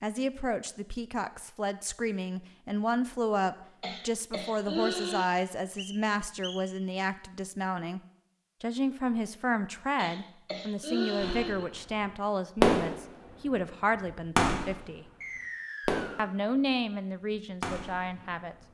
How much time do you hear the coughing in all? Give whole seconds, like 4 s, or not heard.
3 s.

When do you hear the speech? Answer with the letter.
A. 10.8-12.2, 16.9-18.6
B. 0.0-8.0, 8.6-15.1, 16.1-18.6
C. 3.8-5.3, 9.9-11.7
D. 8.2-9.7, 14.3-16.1
B.